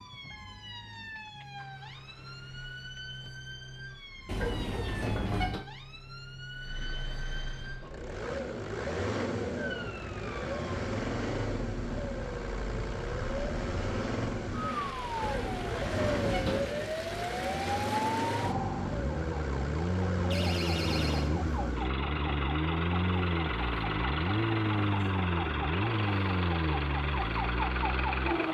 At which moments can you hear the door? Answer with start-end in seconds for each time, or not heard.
4.2-5.7, 15.2-16.8, 20.3-21.3.